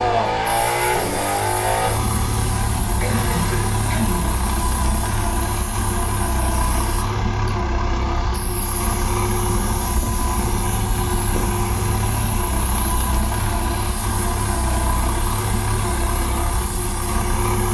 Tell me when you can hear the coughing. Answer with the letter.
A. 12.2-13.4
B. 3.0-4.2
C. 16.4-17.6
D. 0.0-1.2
B.